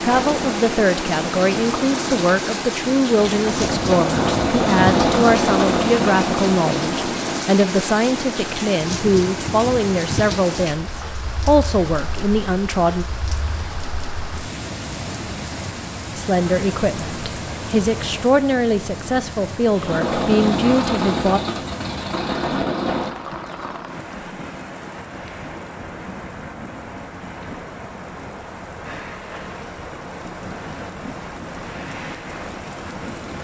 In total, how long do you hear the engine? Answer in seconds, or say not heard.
11 s.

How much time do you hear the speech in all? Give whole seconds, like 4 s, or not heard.
18 s.